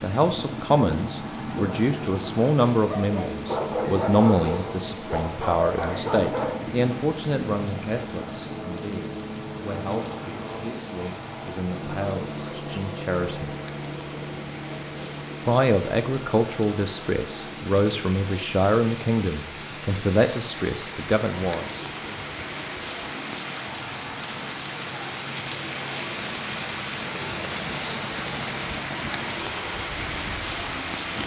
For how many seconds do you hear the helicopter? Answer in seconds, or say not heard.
31 s.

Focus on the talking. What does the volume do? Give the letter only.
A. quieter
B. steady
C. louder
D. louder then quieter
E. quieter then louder
E.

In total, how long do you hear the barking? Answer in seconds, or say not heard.
6 s.